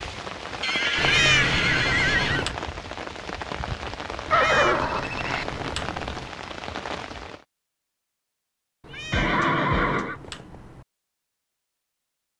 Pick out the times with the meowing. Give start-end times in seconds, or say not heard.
0.9-2.5, 4.2-6.3, 8.8-10.8.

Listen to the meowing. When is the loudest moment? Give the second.
1 s.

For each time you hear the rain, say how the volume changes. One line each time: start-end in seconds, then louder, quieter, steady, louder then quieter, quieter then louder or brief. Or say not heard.
0.0-7.5 steady.